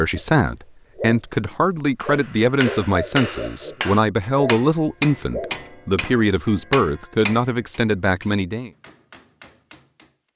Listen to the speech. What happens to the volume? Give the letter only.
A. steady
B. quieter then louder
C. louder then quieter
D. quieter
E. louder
A.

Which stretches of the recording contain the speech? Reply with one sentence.
The speech can be heard from 0.0 to 8.7 s.